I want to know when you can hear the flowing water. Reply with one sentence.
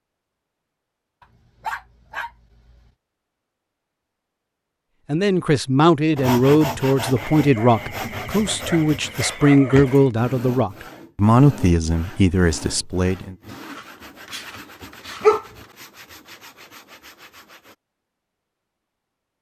The flowing water can't be heard in this clip.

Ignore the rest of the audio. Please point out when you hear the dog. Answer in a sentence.
You can hear the dog from 1.2 to 2.9 s, from 7.2 to 10.1 s and from 13.7 to 15.4 s.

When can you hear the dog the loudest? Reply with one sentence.
The loudest moment of the dog is at 15 seconds.